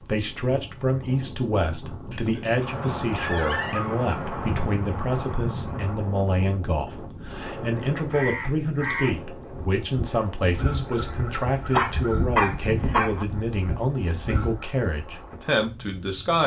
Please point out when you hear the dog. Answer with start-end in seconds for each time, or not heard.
2.1-4.1, 11.7-13.2.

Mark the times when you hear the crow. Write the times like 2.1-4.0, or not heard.
8.1-14.7.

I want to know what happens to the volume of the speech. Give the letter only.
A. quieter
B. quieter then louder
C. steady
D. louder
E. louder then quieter
C.